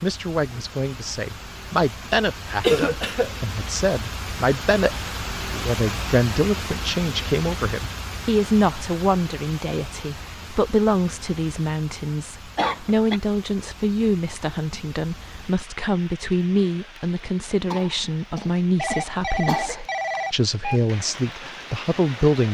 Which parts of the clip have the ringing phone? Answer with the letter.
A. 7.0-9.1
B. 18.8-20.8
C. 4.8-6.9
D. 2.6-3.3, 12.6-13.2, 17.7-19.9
B.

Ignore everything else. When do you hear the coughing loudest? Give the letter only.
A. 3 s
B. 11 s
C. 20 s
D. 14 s
A.